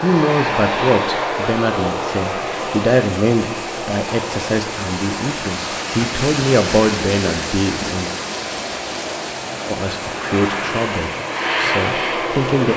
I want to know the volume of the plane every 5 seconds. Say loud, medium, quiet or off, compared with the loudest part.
loud, medium, loud.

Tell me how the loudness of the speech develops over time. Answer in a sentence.
The loudness of the speech stays about the same.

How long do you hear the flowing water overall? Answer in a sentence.
The flowing water can be heard for 13 seconds in total.